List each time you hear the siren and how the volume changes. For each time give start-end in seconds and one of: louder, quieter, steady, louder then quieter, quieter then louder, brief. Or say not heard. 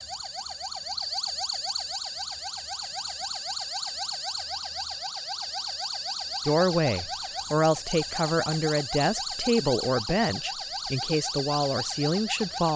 0.0-12.7 steady.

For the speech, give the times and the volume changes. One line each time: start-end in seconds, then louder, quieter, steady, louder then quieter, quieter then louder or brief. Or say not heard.
6.5-12.7 steady.